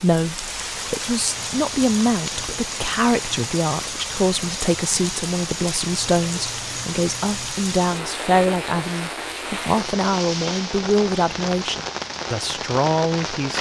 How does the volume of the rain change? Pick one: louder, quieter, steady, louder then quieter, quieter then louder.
steady.